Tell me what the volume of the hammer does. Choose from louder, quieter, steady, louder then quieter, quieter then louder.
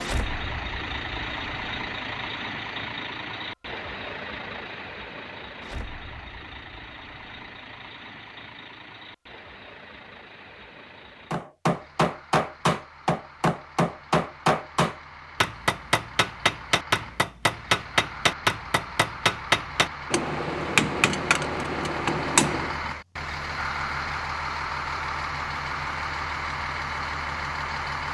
steady.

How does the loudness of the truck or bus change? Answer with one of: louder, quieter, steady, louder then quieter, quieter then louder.
quieter then louder.